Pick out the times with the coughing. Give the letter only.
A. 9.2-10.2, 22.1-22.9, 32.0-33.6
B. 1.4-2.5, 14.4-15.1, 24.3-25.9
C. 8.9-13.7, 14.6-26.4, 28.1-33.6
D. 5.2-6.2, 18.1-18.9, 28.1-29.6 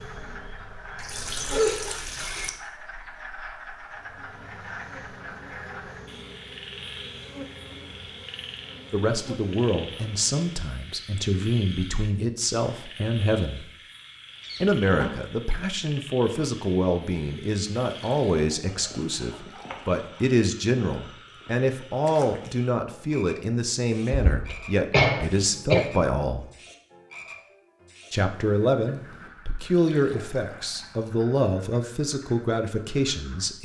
B.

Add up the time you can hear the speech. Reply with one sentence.
The speech can be heard for 22 seconds in total.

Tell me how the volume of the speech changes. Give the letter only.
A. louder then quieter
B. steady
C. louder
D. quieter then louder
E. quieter
B.